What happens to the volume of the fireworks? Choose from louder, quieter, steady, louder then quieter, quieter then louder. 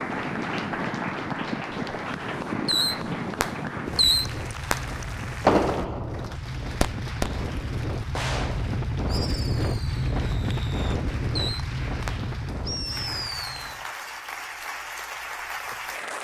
quieter then louder.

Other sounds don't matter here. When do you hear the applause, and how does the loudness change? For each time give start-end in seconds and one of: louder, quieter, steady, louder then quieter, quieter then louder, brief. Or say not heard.
0.0-16.1 quieter then louder.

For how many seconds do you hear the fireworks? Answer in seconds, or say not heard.
11 s.